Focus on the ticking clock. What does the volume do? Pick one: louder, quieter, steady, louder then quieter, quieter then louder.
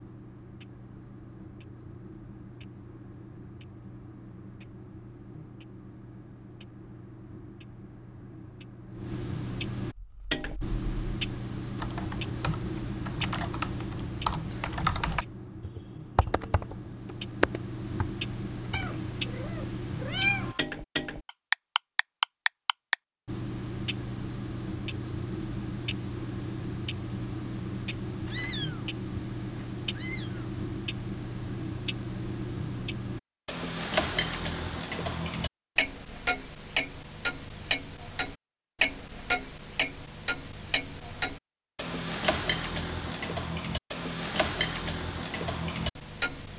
louder.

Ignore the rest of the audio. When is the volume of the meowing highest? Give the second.
20 s.